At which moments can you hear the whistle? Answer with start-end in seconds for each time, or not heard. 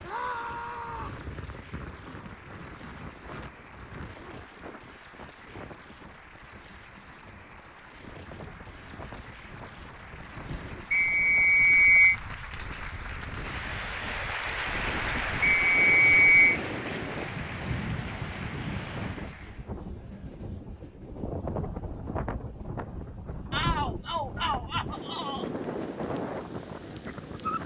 10.9-12.2, 15.4-16.6.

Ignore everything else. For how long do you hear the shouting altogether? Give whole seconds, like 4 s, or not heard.
3 s.